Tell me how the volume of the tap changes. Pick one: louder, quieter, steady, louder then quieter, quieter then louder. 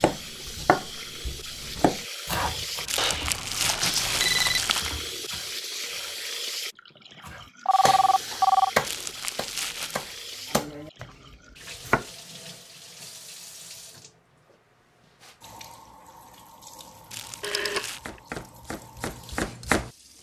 quieter.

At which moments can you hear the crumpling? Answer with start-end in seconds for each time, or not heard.
2.9-5.0, 8.8-10.2, 17.1-18.1.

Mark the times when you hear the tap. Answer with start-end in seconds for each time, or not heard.
0.0-20.1.